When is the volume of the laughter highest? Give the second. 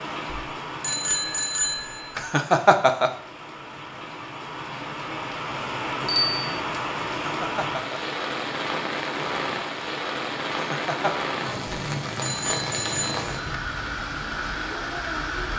3 s.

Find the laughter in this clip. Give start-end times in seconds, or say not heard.
2.1-3.1, 7.0-8.0, 10.5-11.2.